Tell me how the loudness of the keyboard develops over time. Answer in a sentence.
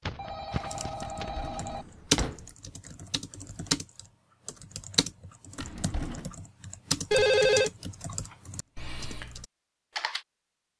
The volume of the keyboard goes down.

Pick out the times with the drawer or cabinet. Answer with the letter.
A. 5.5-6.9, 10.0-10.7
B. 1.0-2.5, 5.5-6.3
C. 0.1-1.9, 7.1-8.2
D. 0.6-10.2
B.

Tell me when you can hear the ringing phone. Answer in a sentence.
The ringing phone can be heard from 0.1 to 1.9 s and from 7.1 to 8.2 s.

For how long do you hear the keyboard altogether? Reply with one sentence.
You can hear the keyboard for 10 seconds altogether.